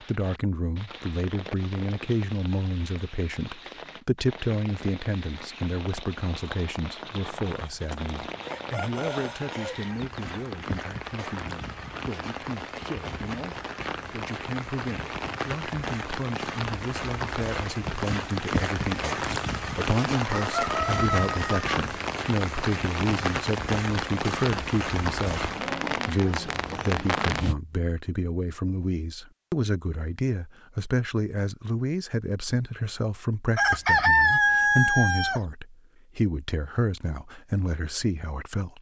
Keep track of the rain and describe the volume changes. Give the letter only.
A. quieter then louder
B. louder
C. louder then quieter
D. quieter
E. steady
B.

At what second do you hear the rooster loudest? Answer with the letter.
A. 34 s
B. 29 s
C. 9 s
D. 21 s
A.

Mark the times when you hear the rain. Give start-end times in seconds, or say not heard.
0.0-27.6.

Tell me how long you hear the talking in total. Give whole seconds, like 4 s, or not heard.
39 s.